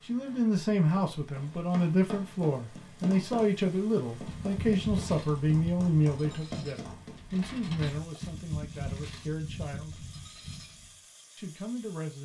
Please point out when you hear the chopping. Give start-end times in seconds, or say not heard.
not heard.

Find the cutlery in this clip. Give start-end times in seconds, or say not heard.
4.2-10.8.